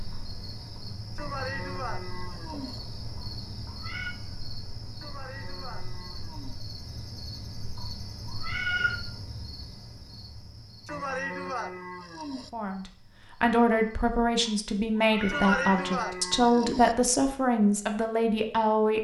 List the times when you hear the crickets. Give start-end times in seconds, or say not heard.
0.0-14.2.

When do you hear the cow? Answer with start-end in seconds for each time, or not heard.
1.1-2.8, 5.0-6.7, 10.8-12.5, 15.2-16.9.